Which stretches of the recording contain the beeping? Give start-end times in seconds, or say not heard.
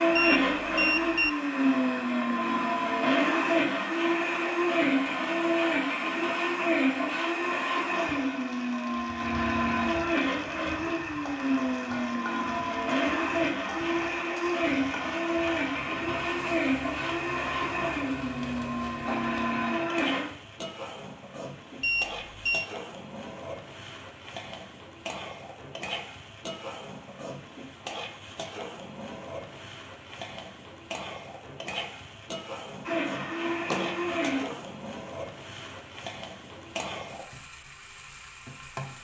0.1-1.3, 21.8-22.7.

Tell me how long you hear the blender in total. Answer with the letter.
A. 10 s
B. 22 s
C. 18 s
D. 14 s
B.